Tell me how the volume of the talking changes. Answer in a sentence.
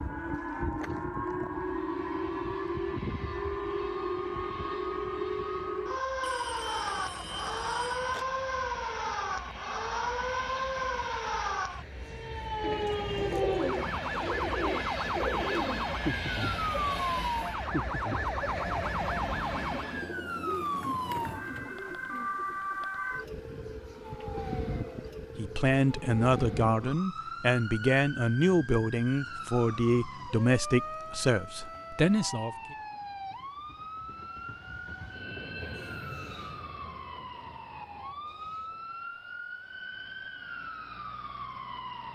The loudness of the talking stays about the same.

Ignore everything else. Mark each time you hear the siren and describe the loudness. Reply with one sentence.
The siren can be heard from 0.0 to 42.0 s, getting quieter.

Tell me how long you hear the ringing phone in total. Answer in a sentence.
The ringing phone can be heard for 2 seconds in total.